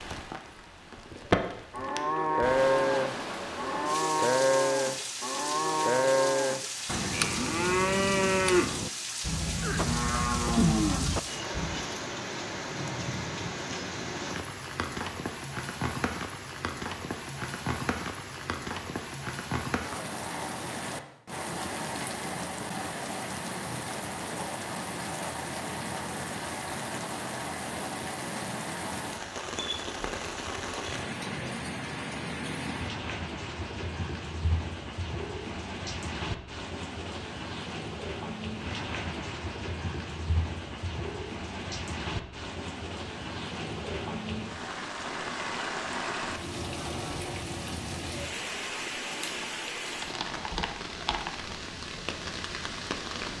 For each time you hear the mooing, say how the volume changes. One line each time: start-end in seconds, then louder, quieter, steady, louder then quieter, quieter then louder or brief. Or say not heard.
1.7-11.8 steady.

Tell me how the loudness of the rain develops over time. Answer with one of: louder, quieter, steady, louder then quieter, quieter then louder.
steady.